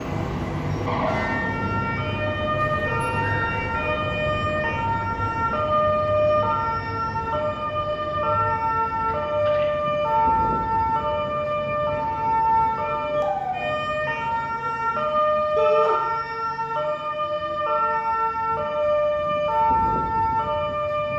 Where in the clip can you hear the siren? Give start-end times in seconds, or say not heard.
0.0-21.1.